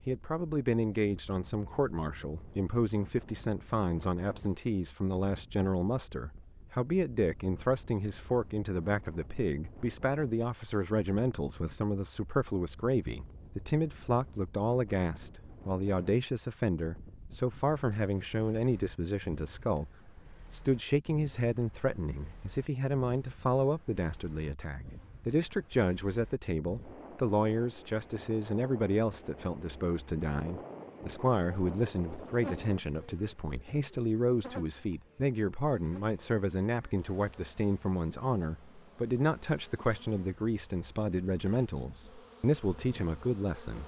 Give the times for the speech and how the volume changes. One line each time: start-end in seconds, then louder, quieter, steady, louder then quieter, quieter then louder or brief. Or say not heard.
0.1-43.8 steady.